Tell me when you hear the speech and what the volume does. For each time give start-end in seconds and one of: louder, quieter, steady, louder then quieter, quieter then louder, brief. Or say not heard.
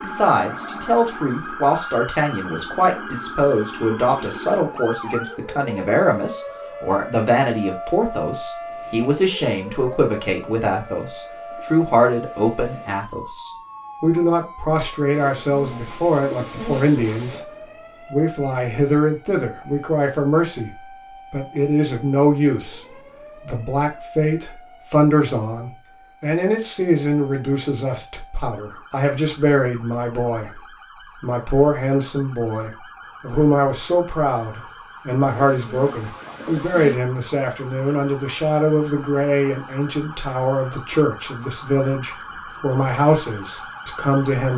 0.0-17.5 steady
18.1-44.5 steady.